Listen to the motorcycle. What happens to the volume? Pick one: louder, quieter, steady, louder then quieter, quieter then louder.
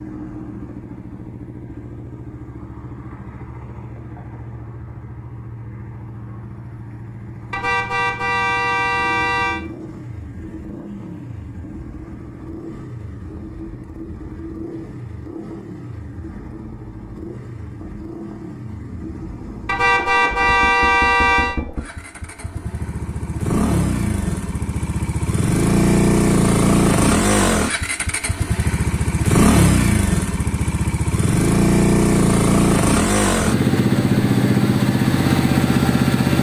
louder.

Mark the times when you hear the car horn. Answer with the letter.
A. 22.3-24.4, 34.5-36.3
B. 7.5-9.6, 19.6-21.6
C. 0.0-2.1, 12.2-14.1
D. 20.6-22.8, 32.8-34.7
B.